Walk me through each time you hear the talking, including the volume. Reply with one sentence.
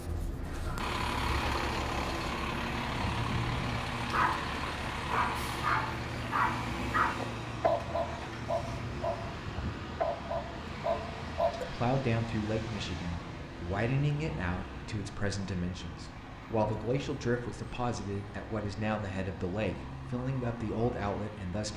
You can hear the talking from 11.7 to 21.7 s, at a steady volume.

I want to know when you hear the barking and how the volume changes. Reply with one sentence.
The barking can be heard from 4.0 to 11.7 s, at a steady volume.